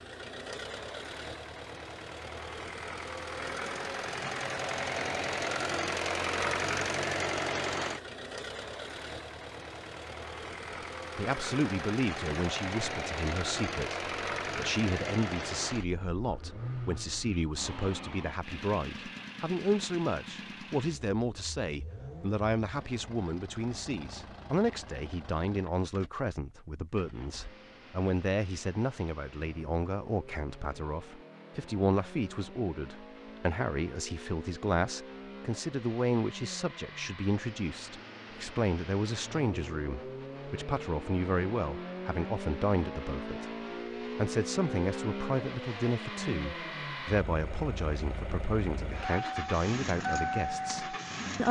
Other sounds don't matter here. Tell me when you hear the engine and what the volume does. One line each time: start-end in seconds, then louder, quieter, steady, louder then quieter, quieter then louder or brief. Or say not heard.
0.0-51.4 quieter then louder.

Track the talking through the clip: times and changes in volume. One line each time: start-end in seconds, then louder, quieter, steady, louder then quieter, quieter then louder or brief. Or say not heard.
11.2-51.4 steady.